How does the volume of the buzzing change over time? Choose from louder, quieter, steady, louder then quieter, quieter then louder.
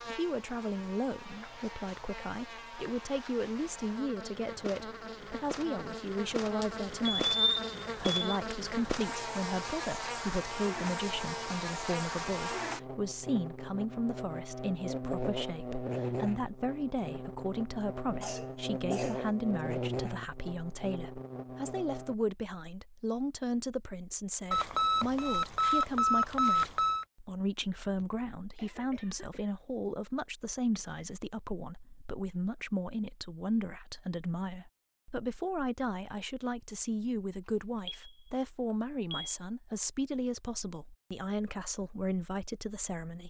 louder.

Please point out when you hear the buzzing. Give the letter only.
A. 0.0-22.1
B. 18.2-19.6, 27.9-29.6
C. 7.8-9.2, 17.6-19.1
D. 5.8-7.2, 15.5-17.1
A.